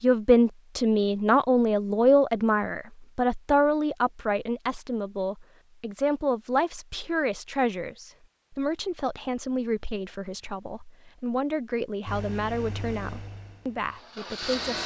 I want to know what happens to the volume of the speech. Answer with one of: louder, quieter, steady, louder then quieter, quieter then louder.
quieter.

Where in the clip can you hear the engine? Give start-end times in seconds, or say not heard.
12.1-14.8.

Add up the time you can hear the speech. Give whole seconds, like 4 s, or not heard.
15 s.